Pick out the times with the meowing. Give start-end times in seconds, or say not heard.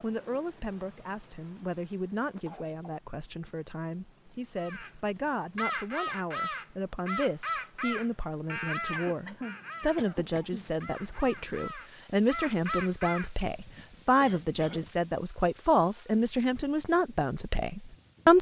not heard.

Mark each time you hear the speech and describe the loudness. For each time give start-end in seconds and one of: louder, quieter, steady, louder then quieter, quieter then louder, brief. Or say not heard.
0.0-18.3 louder.